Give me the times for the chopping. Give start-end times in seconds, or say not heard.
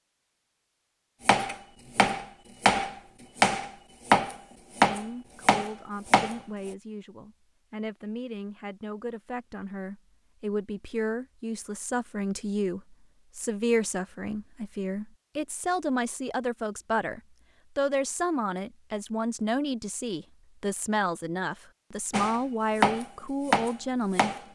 1.2-6.3, 22.1-24.4.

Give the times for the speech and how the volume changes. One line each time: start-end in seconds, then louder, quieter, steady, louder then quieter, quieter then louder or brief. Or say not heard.
4.8-24.3 louder.